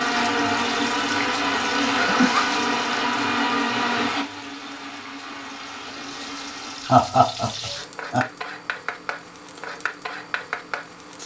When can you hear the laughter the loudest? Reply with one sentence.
The loudest moment of the laughter is at 7 seconds.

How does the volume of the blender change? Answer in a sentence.
The loudness of the blender goes down.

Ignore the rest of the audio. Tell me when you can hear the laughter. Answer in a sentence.
You can hear the laughter from 1.9 to 2.6 s and from 6.8 to 8.2 s.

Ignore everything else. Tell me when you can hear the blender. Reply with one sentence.
You can hear the blender from 0.0 to 7.0 s.